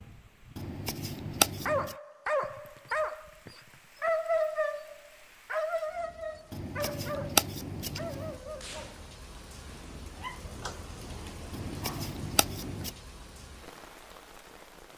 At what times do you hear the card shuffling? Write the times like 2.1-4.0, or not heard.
0.6-1.9, 6.5-8.3, 11.5-12.9.